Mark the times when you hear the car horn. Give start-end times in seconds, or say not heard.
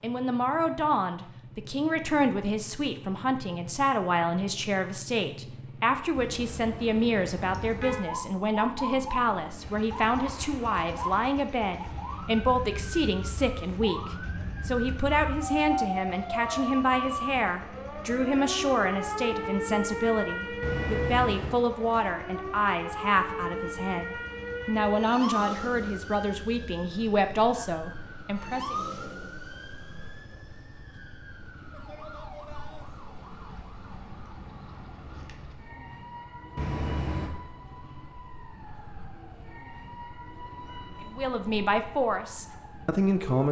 6.2-8.0, 20.6-21.6, 36.5-37.3.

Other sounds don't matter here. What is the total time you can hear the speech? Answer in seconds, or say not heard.
31 s.